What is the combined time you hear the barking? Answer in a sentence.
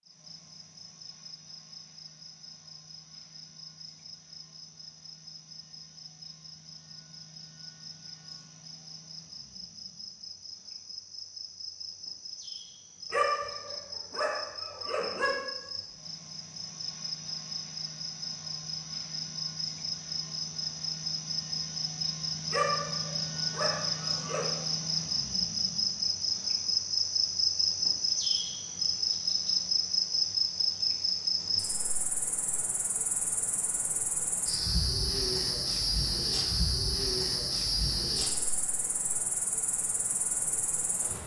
You can hear the barking for 4 seconds altogether.